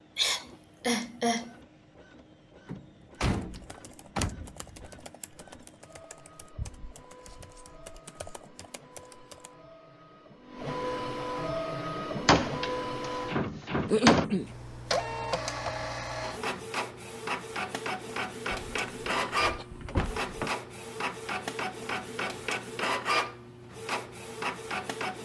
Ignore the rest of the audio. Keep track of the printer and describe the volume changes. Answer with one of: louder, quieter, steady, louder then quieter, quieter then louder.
louder.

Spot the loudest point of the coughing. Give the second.
14 s.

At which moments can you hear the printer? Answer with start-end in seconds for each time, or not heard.
0.0-25.2.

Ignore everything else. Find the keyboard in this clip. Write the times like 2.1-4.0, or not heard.
3.3-9.5.